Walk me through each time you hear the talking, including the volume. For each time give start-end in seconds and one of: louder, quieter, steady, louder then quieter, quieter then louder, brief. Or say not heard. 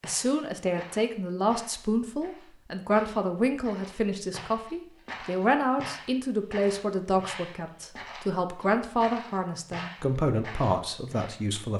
0.0-11.7 steady.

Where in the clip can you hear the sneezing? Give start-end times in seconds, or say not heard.
not heard.